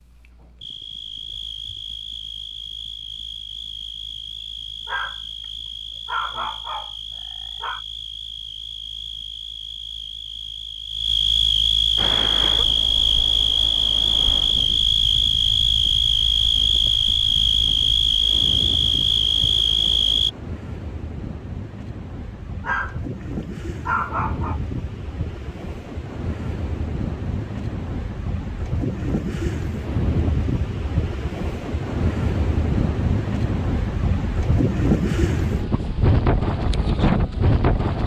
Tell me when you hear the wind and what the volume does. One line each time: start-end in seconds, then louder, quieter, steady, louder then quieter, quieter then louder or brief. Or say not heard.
11.9-38.0 louder.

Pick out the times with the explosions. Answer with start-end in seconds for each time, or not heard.
not heard.